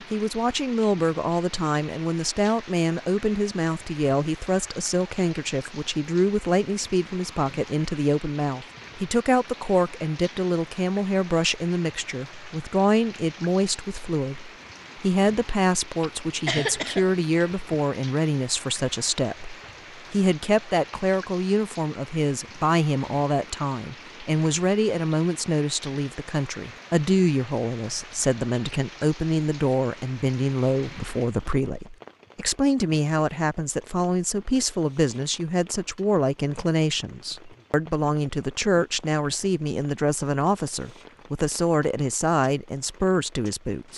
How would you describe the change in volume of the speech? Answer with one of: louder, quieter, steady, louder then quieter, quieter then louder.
steady.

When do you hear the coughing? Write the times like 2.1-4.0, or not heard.
16.0-17.6.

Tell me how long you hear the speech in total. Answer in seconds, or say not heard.
44 s.